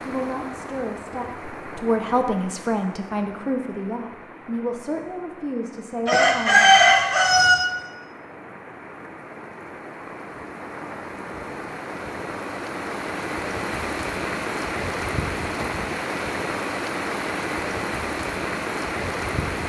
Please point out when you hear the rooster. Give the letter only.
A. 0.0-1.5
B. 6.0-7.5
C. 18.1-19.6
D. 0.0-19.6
B.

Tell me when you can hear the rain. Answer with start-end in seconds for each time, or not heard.
0.0-19.6.